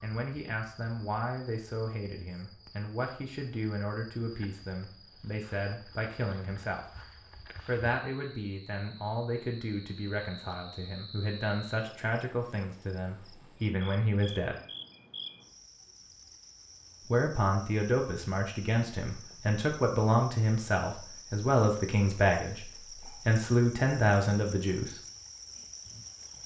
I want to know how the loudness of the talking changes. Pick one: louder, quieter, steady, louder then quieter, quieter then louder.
louder.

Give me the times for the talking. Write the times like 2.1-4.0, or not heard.
0.0-6.8, 7.7-14.6, 17.1-24.9.